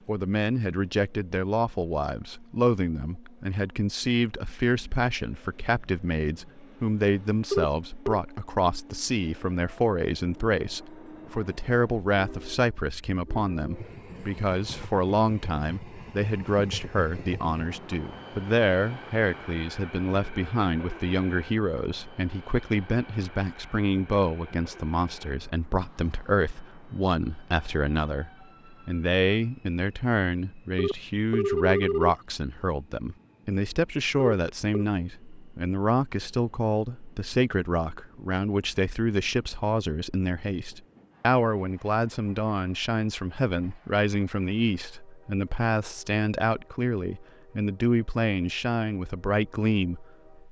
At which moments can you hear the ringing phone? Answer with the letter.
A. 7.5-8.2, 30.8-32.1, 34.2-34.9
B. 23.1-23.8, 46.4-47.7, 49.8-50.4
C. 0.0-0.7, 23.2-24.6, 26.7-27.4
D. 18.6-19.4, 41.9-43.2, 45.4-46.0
A.